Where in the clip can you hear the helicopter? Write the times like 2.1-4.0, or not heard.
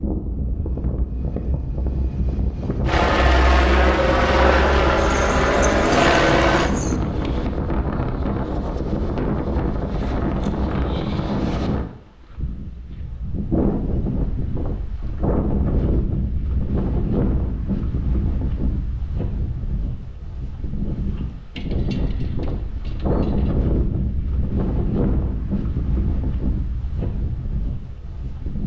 2.9-6.7.